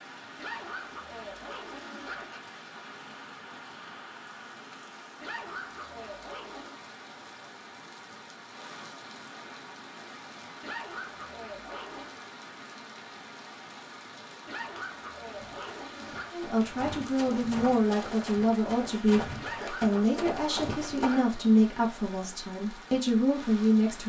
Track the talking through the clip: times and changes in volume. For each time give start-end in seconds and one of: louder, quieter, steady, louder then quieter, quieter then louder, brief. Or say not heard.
16.3-24.0 steady.